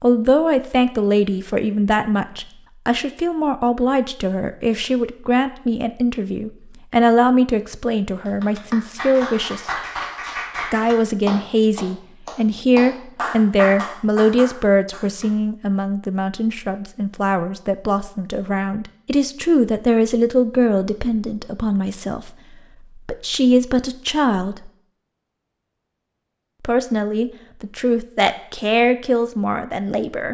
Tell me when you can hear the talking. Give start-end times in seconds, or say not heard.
0.0-9.7, 10.6-22.3, 22.9-24.7, 26.6-30.2.